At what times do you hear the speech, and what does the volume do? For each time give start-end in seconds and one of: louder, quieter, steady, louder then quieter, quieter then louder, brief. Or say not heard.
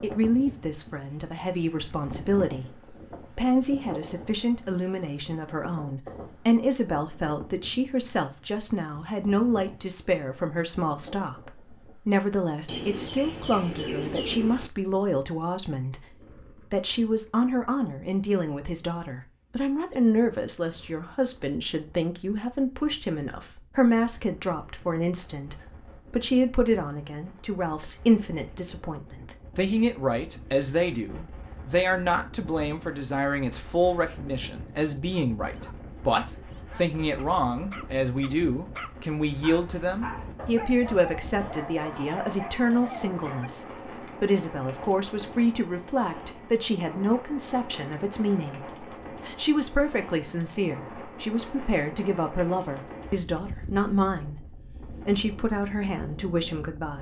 0.0-56.9 steady.